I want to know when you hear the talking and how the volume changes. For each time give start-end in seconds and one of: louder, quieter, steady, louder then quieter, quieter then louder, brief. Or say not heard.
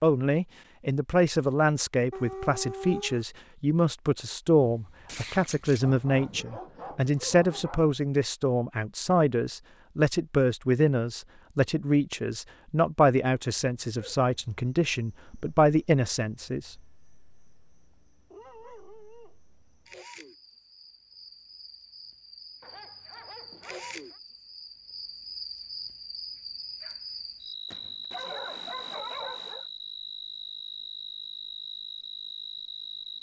0.0-16.7 steady.